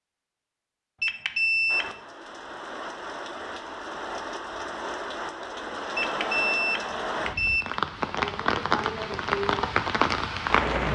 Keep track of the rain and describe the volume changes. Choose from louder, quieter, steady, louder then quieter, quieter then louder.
louder.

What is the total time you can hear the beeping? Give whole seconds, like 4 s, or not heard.
3 s.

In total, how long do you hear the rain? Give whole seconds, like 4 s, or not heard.
9 s.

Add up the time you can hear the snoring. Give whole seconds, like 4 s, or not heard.
not heard.